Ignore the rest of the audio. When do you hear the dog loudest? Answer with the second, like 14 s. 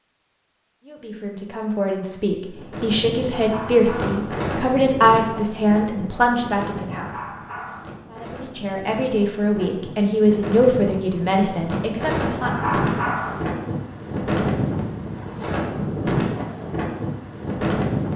13 s.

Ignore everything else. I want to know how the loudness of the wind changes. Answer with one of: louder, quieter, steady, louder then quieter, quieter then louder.
quieter then louder.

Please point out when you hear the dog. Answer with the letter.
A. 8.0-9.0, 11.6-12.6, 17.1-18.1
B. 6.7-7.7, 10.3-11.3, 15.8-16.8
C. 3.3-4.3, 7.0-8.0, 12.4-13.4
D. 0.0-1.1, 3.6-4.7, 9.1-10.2
C.